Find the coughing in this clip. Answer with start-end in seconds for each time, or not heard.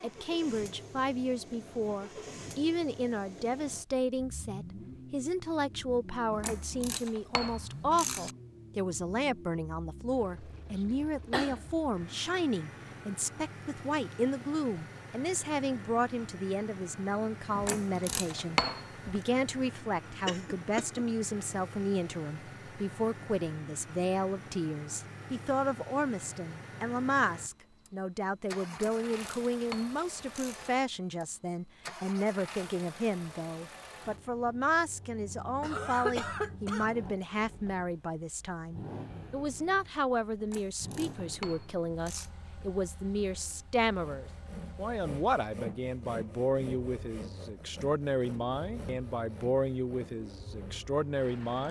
10.7-11.7, 20.2-21.1, 35.6-36.9.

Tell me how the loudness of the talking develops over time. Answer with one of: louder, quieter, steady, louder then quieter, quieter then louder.
steady.